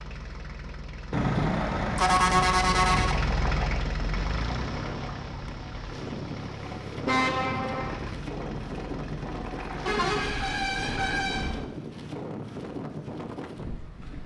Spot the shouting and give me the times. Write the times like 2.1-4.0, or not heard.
not heard.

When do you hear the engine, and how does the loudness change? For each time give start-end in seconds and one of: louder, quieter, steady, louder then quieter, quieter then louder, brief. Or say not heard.
0.0-10.1 louder then quieter.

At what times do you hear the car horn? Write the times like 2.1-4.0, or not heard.
1.1-3.1, 7.0-8.0, 9.8-11.7.